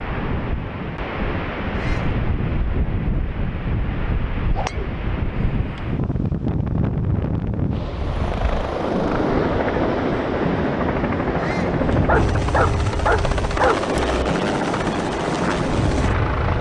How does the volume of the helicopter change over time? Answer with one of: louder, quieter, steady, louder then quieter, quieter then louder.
steady.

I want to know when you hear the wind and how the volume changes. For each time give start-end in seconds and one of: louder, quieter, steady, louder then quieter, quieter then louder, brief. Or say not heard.
0.0-16.5 steady.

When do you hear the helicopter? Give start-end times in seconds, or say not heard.
7.9-16.5.